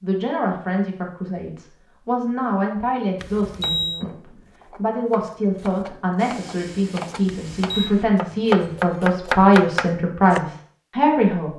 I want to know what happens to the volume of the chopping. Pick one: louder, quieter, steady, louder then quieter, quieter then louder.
louder.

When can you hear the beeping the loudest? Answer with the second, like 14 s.
4 s.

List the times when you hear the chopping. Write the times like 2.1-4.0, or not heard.
3.5-10.4.